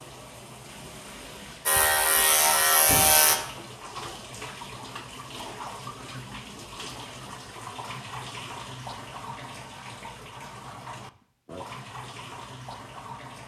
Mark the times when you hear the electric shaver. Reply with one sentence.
You can hear the electric shaver from 1.6 to 3.4 s.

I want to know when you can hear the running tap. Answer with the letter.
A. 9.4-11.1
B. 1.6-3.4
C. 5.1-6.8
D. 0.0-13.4
D.